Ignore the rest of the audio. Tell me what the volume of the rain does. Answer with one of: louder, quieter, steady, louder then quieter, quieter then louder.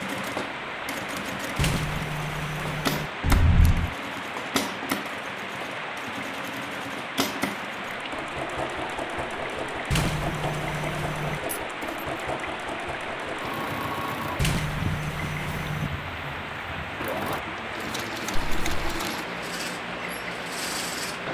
steady.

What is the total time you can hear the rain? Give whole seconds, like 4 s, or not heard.
21 s.